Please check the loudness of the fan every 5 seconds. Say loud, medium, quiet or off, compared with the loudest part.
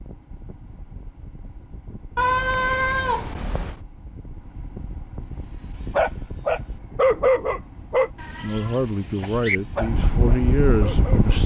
quiet, quiet, loud.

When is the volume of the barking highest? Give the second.
7 s.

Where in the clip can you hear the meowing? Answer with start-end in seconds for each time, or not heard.
2.1-3.8, 8.2-9.6.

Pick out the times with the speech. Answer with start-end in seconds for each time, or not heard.
8.4-11.4.